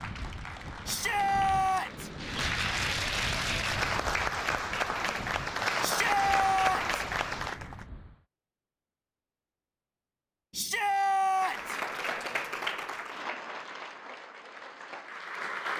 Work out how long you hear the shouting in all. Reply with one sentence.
The shouting can be heard for 4 seconds in total.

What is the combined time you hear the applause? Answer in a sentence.
You can hear the applause for 12 seconds altogether.